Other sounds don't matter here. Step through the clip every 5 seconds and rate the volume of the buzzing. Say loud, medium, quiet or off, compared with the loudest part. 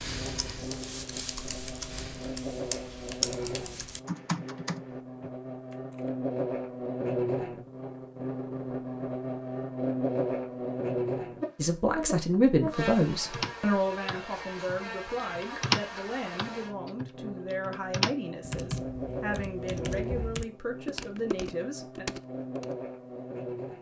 medium, loud, loud, medium, medium.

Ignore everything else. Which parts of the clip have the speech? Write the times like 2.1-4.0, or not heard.
11.6-22.1.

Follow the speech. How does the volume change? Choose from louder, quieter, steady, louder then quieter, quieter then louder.
quieter.